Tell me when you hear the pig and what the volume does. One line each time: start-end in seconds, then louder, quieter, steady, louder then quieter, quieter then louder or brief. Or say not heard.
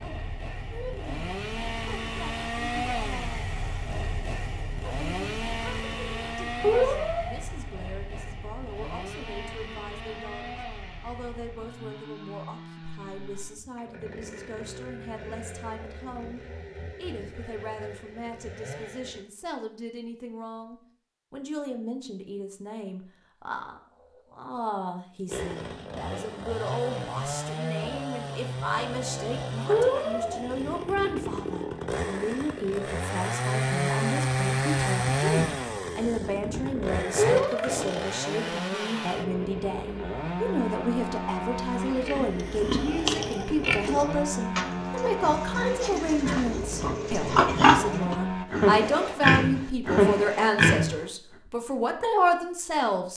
42.0-51.0 quieter then louder.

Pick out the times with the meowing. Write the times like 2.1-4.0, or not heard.
6.6-7.3, 29.6-30.6, 37.1-37.8.